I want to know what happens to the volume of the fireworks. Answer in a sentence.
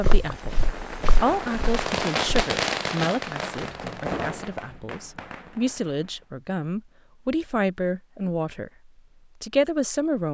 The loudness of the fireworks goes up, then down.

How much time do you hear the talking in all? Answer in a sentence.
The talking can be heard for 10 seconds in total.